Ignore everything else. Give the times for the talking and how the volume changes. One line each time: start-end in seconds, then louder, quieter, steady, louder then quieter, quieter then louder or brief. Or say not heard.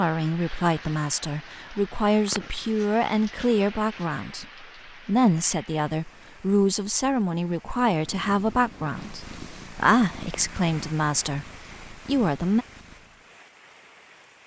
0.0-11.4 steady
12.1-12.7 brief.